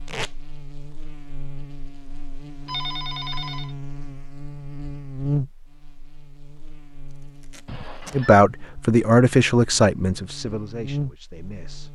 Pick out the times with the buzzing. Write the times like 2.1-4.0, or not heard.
0.0-11.8.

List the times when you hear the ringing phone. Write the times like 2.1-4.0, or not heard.
2.6-3.8, 7.7-8.3.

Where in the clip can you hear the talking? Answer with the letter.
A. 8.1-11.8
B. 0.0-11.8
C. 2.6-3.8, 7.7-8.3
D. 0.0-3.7
A.